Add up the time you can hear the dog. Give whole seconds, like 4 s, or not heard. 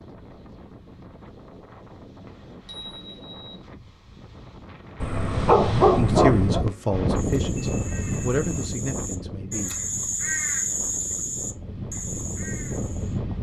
2 s.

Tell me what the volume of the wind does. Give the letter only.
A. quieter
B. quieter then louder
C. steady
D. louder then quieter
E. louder
D.